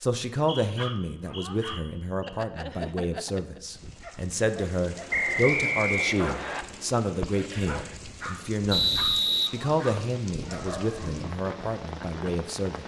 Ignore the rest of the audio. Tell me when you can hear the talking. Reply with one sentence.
You can hear the talking from 0.0 to 12.8 s.